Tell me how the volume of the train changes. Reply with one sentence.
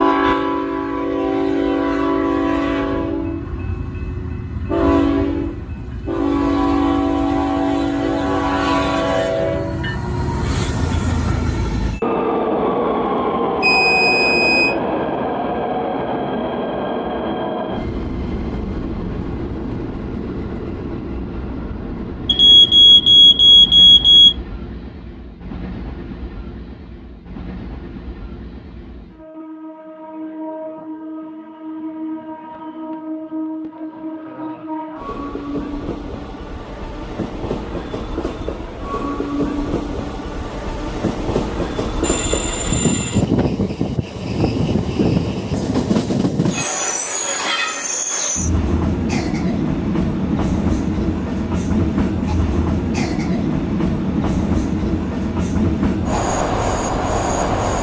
The loudness of the train goes down, then up.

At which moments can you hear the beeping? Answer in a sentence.
You can hear the beeping from 13.6 to 14.8 s, from 22.2 to 24.3 s and from 42.0 to 43.2 s.